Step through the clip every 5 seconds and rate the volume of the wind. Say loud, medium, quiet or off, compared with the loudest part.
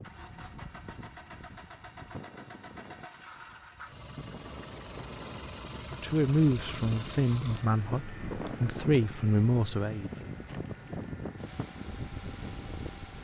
medium, loud, loud.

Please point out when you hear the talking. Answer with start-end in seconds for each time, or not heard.
6.0-10.1.